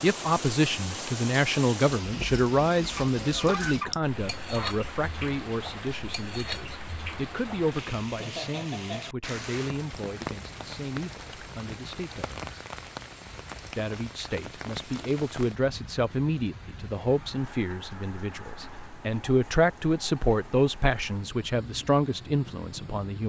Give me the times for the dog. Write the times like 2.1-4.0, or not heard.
not heard.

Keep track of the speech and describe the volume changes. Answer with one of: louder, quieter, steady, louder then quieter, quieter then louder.
quieter then louder.